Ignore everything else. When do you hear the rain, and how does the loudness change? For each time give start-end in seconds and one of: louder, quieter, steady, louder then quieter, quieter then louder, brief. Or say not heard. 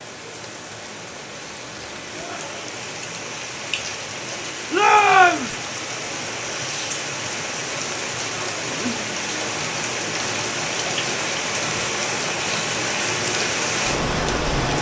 0.0-14.7 louder.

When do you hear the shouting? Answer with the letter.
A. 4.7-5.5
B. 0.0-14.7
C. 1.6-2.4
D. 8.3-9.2
A.